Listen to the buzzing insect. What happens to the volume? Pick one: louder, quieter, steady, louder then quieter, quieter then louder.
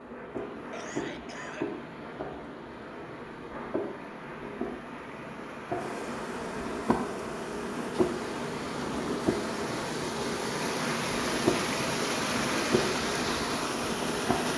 louder.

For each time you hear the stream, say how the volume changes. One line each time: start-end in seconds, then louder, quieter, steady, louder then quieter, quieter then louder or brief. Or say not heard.
0.0-14.5 louder.